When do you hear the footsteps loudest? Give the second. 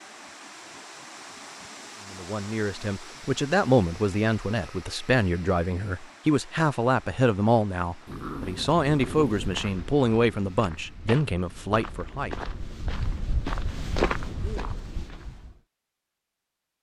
14 s.